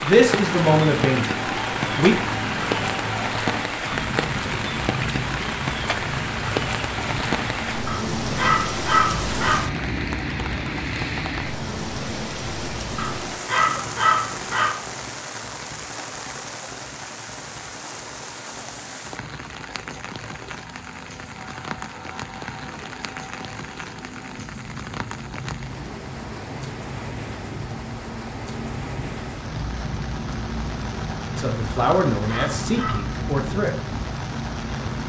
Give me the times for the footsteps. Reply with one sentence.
The footsteps can't be heard in this clip.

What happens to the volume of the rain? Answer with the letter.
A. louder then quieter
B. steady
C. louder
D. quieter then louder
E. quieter
E.